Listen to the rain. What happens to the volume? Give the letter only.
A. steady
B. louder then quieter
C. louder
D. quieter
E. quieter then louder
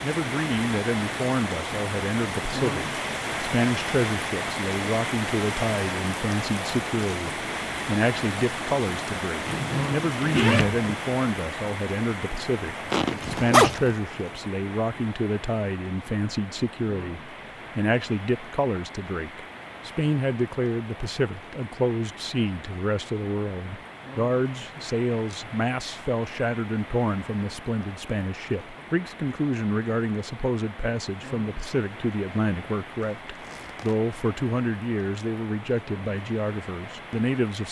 D.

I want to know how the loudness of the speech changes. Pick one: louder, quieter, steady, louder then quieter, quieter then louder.
steady.